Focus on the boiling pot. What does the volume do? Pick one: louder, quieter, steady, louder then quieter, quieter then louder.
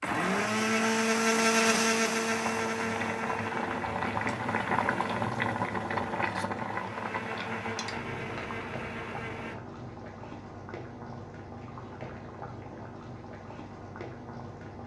quieter.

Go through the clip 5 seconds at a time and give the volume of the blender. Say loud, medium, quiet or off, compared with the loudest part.
loud, medium, off.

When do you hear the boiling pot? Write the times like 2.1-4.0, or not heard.
2.2-14.8.